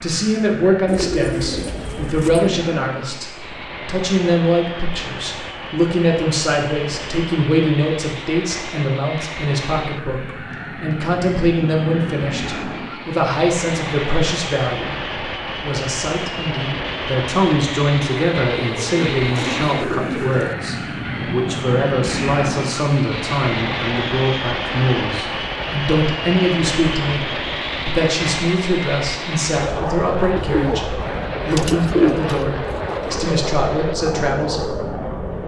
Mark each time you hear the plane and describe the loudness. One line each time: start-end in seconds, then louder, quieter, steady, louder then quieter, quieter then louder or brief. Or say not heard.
0.0-35.4 louder.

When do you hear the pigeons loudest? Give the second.
32 s.